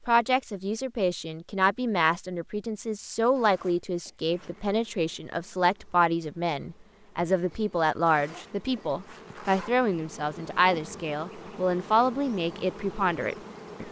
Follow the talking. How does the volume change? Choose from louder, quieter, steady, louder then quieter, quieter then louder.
steady.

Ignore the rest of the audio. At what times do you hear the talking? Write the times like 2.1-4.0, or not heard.
0.1-13.8.